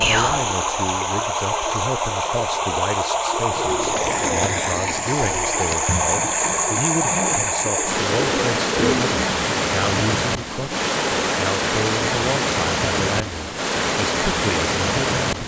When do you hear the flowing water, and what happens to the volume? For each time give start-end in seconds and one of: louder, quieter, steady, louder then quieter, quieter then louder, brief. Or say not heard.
0.0-15.4 steady.